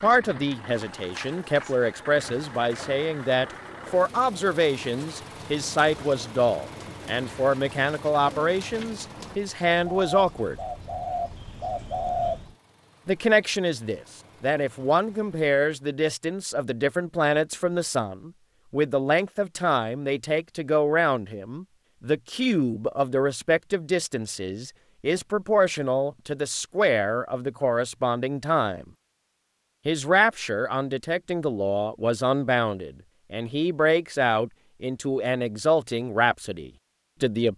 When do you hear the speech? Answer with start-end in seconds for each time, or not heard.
0.0-10.6, 13.1-28.9, 29.9-37.5.